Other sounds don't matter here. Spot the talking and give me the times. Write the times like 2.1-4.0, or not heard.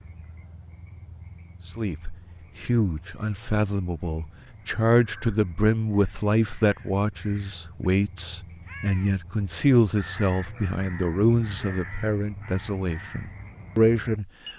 1.6-14.2.